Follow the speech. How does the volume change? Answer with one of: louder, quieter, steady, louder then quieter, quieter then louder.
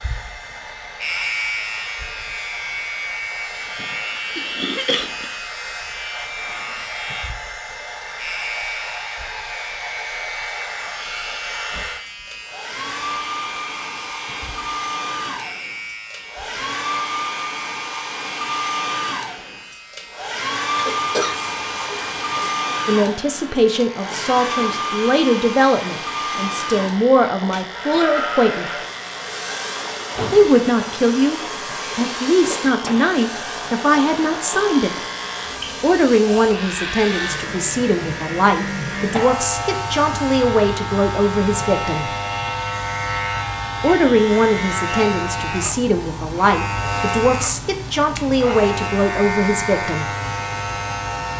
steady.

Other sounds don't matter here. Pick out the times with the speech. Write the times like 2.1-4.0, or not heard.
22.9-28.7, 30.3-34.9, 35.8-42.1, 43.8-50.1.